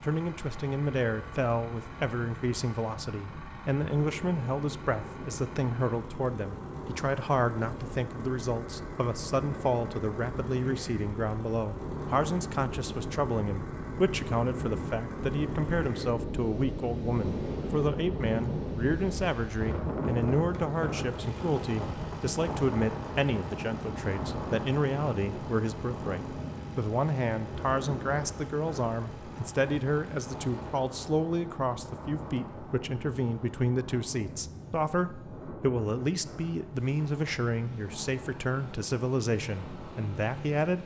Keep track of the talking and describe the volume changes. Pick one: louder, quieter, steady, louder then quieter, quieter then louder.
steady.